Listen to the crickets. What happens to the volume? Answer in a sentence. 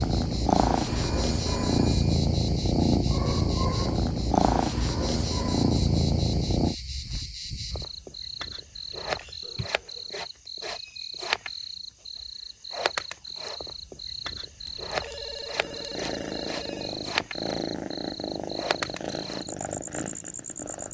The volume of the crickets stays about the same.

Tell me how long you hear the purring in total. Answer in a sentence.
The purring can be heard for 12 seconds in total.